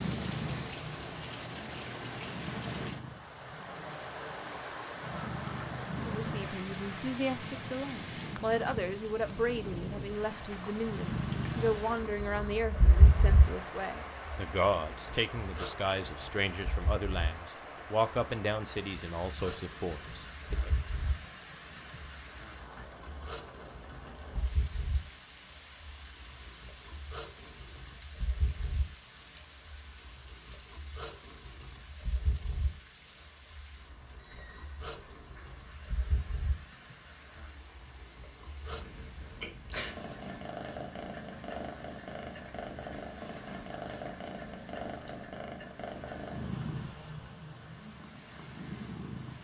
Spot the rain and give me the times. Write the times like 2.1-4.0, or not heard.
0.0-49.3.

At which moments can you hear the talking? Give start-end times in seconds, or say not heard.
6.1-20.7.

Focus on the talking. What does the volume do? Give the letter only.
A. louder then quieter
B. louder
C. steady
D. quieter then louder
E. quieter
C.